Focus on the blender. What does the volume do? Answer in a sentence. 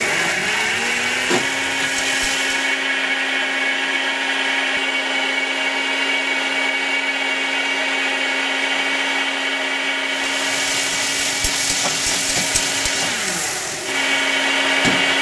The loudness of the blender stays about the same.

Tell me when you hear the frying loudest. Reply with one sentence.
The loudest moment of the frying is at 12 seconds.